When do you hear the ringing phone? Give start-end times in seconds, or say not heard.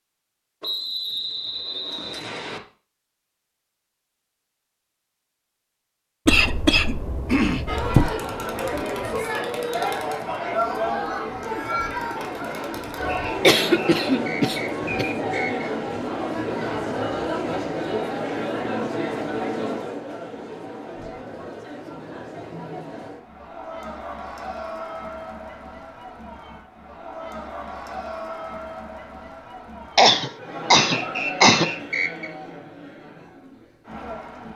not heard.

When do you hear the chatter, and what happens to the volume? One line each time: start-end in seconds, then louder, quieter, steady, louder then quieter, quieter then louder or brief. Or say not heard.
7.7-34.5 quieter.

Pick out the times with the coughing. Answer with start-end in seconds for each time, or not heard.
6.2-8.1, 13.4-15.1, 29.9-31.7.